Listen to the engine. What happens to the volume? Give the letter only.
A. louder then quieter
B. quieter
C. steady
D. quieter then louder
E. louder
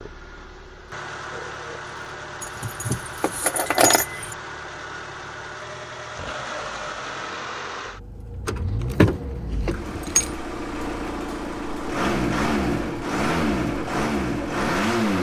E.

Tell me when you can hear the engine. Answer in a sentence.
You can hear the engine from 0.0 to 15.1 s.